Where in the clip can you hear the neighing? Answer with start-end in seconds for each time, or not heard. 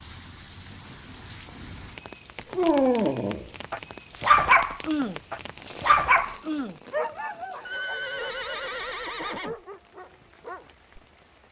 7.7-9.6.